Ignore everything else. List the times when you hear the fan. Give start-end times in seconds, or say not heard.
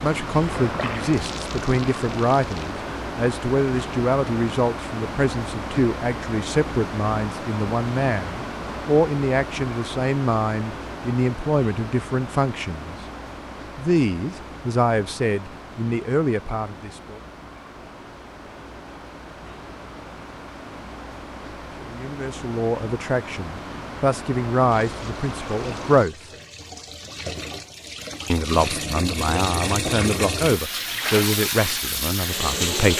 0.0-26.1.